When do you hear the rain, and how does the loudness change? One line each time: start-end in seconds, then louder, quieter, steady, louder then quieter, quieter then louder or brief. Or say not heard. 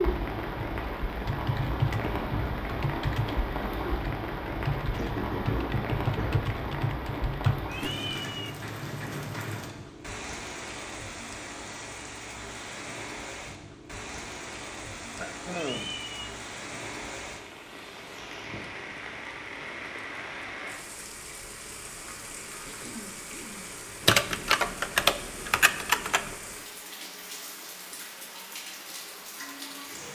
0.0-30.1 quieter.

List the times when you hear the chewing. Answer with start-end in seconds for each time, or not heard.
not heard.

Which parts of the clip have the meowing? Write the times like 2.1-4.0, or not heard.
7.7-8.5, 15.5-16.3.